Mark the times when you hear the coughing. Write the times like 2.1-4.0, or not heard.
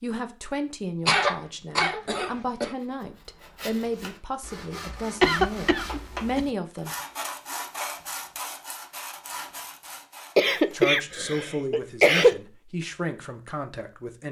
1.1-2.7, 5.2-6.5, 10.3-12.3.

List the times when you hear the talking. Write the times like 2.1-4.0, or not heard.
0.0-7.0, 10.6-14.2.